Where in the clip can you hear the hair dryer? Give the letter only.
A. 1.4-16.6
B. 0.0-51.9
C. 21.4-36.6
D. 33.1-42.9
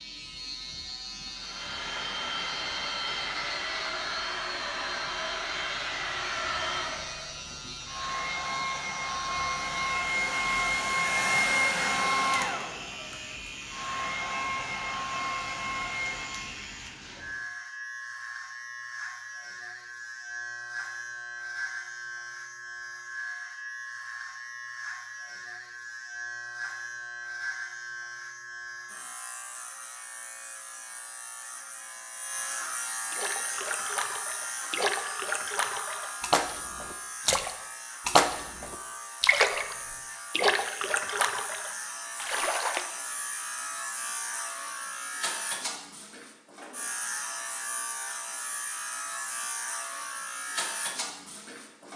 A.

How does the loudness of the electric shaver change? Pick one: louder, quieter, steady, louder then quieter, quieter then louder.
steady.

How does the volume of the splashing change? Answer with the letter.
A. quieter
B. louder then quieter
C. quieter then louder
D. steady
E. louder
B.